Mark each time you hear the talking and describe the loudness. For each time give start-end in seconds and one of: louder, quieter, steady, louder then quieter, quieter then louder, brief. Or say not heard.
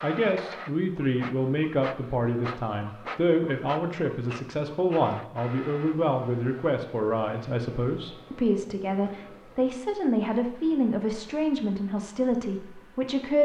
0.0-13.4 steady.